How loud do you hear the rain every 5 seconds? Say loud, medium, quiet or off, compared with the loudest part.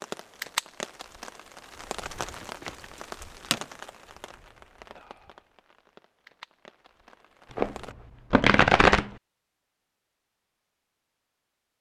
loud, quiet, off.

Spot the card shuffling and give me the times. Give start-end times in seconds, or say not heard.
2.2-2.9, 7.5-9.1.